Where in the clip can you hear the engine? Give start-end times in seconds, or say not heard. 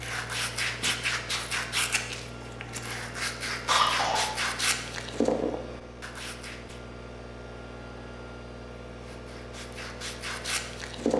0.0-11.1.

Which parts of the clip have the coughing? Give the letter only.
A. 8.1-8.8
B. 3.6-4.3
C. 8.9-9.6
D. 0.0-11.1
B.